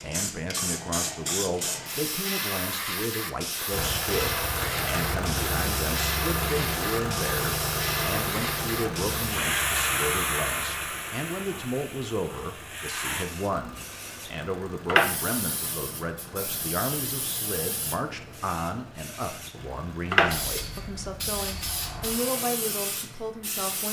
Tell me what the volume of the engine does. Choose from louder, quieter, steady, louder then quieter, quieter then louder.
quieter.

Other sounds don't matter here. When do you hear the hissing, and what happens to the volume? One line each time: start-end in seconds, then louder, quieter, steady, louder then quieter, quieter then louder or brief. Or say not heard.
0.0-23.8 steady.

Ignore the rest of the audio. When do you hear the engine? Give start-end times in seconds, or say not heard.
3.7-23.8.